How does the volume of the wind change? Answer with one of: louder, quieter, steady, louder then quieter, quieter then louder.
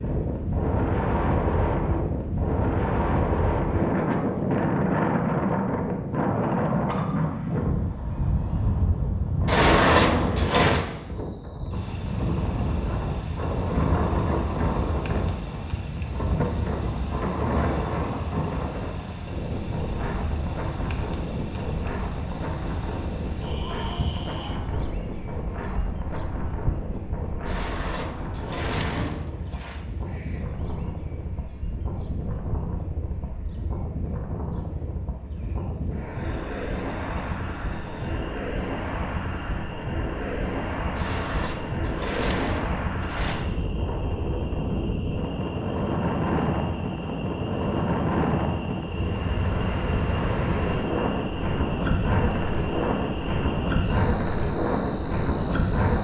quieter then louder.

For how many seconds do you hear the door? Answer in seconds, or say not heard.
6 s.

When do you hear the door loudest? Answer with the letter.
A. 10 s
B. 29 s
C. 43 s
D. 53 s
A.